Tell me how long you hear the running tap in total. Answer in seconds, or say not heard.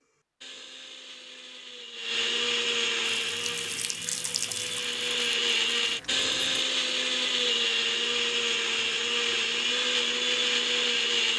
4 s.